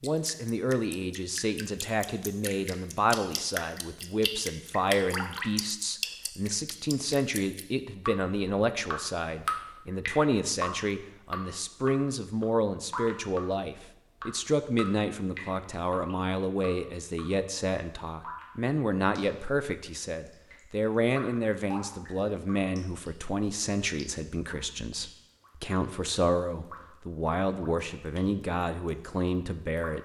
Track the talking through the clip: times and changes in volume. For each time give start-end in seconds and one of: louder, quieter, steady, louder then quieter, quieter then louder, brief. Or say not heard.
0.0-30.0 steady.